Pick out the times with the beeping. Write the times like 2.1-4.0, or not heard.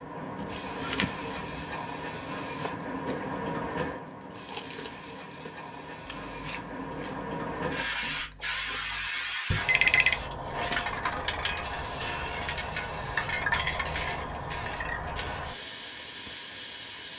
0.3-1.8, 9.5-10.2.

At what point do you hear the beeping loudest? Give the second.
10 s.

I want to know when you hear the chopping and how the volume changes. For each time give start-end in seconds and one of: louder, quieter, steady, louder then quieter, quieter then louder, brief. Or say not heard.
not heard.